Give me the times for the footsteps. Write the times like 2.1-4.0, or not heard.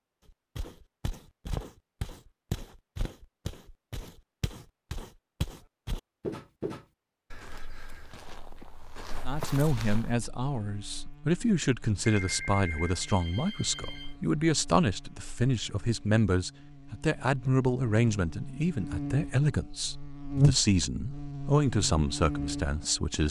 0.2-10.2.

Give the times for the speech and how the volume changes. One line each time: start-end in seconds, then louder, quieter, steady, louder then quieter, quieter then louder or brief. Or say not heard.
9.2-23.2 steady.